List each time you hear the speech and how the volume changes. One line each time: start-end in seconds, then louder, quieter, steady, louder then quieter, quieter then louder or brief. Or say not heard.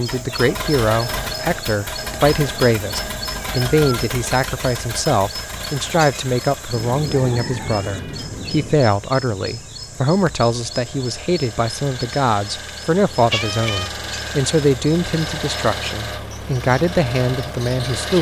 0.0-18.1 steady.